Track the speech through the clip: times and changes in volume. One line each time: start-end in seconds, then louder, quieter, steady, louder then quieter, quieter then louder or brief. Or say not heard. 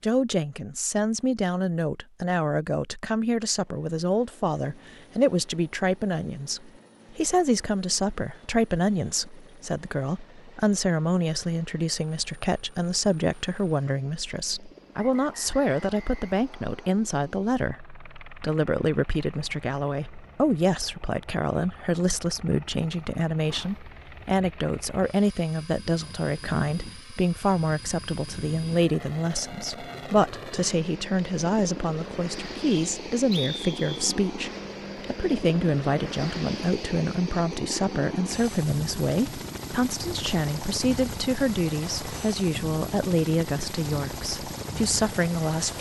0.0-45.7 steady.